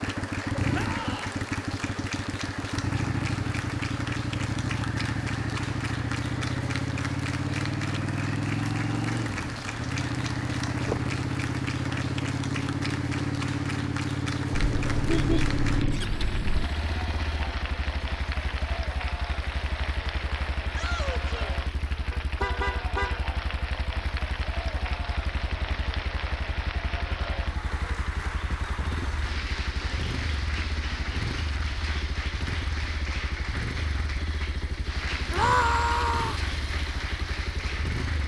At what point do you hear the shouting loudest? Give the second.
36 s.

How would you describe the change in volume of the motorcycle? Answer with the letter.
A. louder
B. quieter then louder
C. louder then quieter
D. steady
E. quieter
E.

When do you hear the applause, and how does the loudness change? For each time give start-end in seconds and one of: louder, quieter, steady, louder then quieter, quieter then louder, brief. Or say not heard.
0.0-38.2 steady.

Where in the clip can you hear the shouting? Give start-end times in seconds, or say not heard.
0.7-1.3, 20.7-21.6, 35.3-36.4.